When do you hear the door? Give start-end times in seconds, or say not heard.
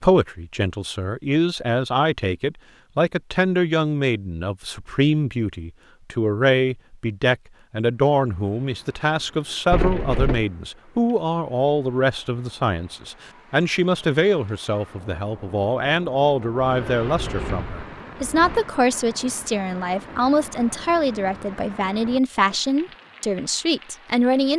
9.7-10.4, 16.6-18.6.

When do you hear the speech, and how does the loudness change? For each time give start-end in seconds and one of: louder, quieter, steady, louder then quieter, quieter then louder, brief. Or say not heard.
0.0-24.5 steady.